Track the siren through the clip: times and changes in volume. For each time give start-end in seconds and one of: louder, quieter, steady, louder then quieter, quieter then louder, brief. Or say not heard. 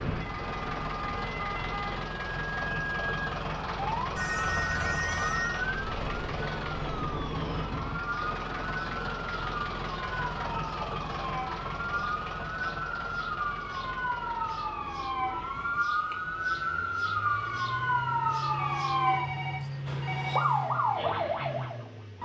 0.0-22.1 louder.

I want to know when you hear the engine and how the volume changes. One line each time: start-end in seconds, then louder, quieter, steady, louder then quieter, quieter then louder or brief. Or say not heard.
0.0-22.1 quieter then louder.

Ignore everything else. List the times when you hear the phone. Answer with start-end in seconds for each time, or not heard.
4.2-5.6, 18.5-20.5.